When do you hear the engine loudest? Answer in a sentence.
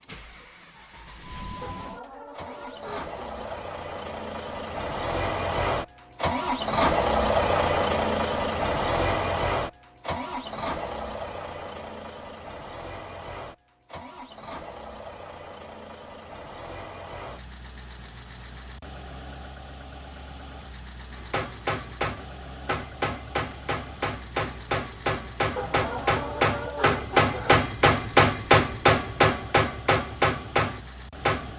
The loudest moment of the engine is at 7 seconds.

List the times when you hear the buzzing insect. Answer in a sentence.
The buzzing insect can't be heard in this clip.